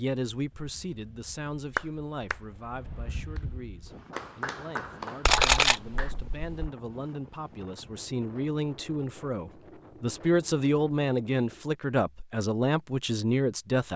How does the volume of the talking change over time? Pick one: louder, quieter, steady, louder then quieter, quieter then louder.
quieter then louder.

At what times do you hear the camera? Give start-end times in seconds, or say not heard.
5.2-6.7.